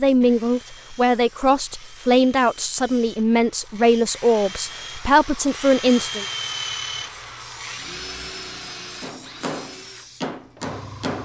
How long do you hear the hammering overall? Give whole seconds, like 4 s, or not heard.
2 s.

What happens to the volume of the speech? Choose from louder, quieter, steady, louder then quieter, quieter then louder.
steady.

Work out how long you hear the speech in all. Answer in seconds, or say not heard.
6 s.